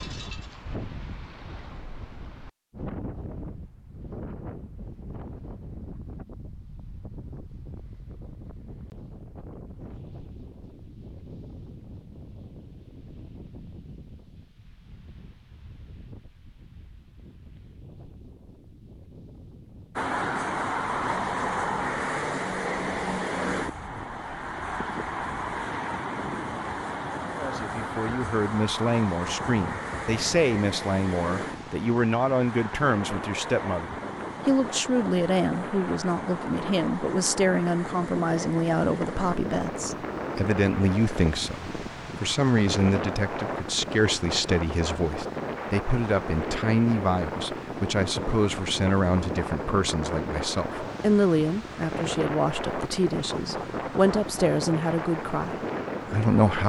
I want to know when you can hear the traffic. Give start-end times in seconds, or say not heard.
19.9-56.5.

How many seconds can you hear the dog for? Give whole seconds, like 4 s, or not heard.
not heard.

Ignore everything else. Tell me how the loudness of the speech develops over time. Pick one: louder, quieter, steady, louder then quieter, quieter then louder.
steady.